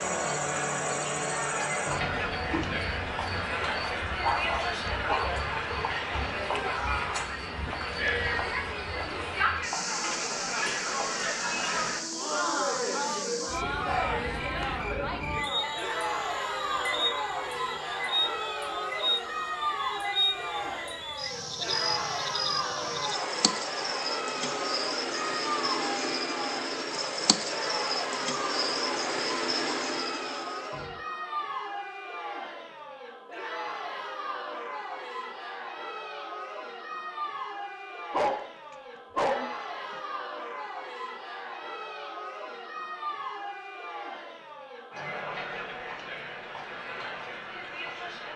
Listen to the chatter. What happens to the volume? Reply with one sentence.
The volume of the chatter goes down.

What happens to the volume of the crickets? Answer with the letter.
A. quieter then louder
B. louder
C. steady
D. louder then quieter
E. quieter
B.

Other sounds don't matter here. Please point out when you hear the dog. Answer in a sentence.
You can hear the dog from 4.2 to 5.3 s and from 38.1 to 39.5 s.